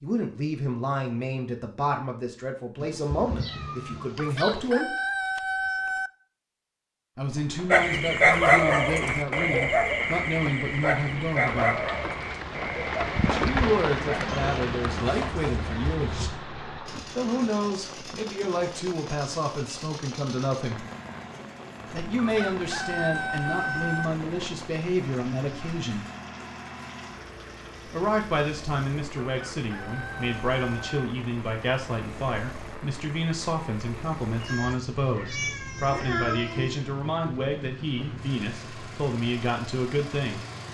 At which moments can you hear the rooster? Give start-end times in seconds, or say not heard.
4.2-6.1, 22.1-24.1, 29.2-31.1.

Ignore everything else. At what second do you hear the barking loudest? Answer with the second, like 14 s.
8 s.